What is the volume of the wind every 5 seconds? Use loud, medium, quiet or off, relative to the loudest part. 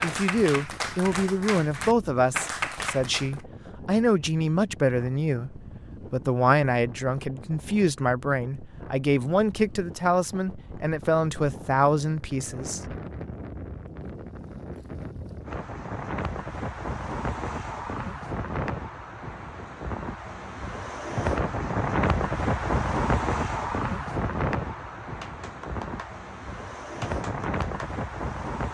quiet, quiet, quiet, medium, loud, medium.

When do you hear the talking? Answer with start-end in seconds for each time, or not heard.
0.0-12.9.